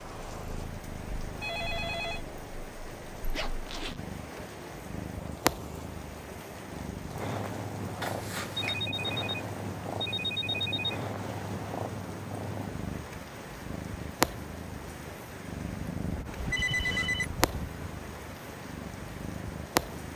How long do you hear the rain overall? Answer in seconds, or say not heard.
20 s.